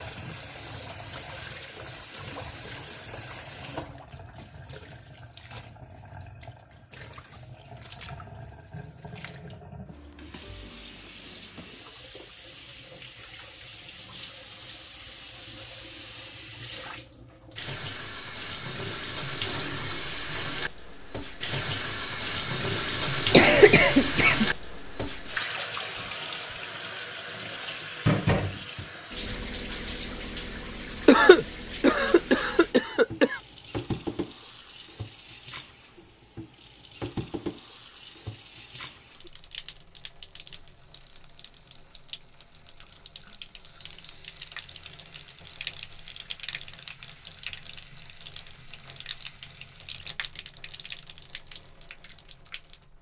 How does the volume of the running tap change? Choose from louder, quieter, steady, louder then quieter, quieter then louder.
louder then quieter.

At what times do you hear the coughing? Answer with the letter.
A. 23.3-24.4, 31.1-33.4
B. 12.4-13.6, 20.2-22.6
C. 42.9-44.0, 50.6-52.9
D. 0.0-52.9
A.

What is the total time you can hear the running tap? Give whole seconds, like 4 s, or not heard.
53 s.